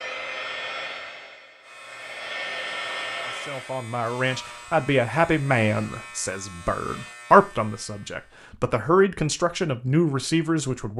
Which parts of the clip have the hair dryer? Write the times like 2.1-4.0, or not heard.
0.0-3.8.